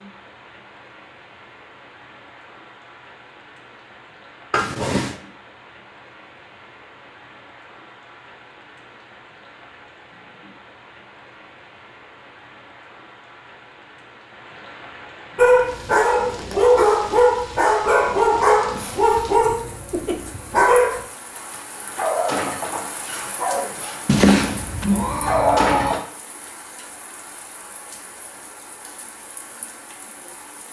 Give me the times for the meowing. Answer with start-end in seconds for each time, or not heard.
4.5-5.2, 24.1-25.9.